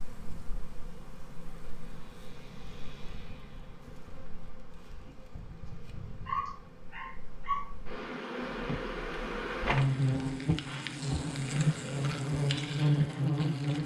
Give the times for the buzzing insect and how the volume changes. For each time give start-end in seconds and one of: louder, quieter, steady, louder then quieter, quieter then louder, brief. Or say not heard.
0.0-13.8 louder.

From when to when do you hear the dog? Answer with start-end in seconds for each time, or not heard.
6.2-7.7.